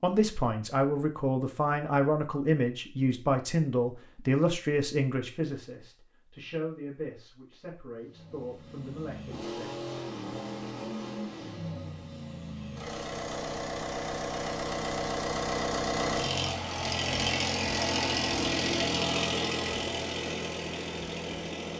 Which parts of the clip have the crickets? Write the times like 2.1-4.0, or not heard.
not heard.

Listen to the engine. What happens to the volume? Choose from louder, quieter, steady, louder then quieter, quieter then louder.
louder.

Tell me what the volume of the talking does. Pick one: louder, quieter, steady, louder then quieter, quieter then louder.
quieter.